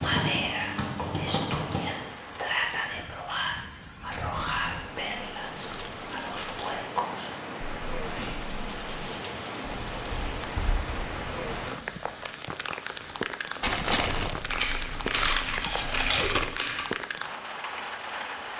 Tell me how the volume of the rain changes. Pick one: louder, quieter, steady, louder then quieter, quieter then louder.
louder.